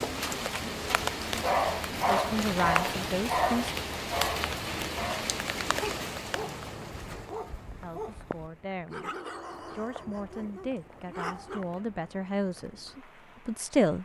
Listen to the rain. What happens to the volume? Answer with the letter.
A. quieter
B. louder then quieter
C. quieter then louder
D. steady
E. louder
A.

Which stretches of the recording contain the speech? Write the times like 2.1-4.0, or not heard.
2.0-3.7, 7.8-9.1, 9.7-14.0.